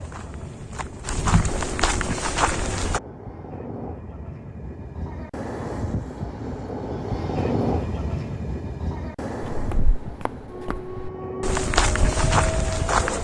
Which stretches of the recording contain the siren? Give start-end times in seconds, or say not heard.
10.4-13.1.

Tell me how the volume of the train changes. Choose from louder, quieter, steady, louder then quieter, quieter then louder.
louder then quieter.